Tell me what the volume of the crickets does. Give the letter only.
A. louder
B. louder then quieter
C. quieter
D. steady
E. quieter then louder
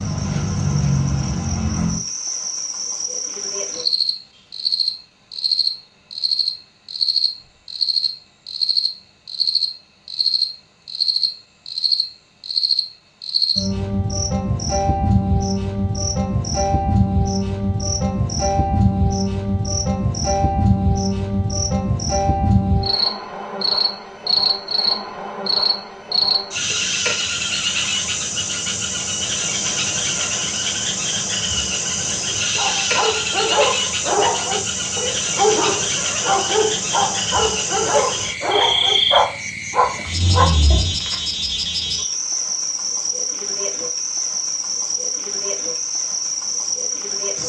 D.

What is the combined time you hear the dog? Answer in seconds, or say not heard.
8 s.